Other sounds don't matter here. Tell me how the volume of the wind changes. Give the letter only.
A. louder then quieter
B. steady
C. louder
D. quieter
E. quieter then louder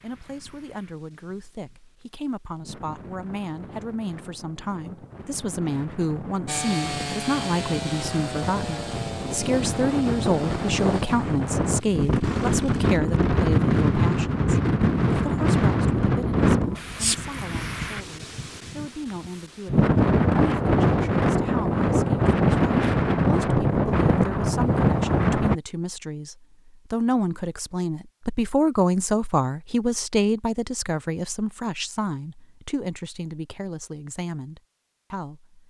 C.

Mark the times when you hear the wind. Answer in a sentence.
The wind can be heard from 0.0 to 25.6 s.